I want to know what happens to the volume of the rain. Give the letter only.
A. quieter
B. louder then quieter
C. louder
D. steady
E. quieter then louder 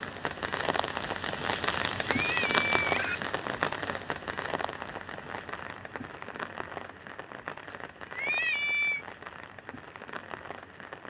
A.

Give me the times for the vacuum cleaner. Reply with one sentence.
The vacuum cleaner can't be heard in this clip.